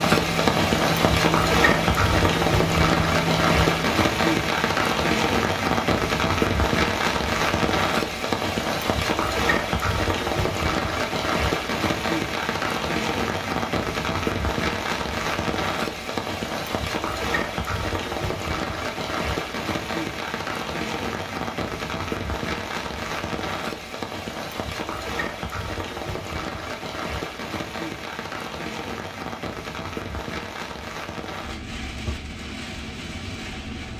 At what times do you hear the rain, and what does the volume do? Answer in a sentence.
You can hear the rain from 0.0 to 33.9 s, getting quieter.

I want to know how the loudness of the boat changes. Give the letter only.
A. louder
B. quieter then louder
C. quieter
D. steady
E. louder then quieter
D.